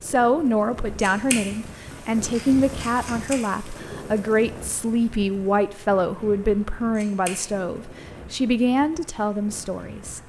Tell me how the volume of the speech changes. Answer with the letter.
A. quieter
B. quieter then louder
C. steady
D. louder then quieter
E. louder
C.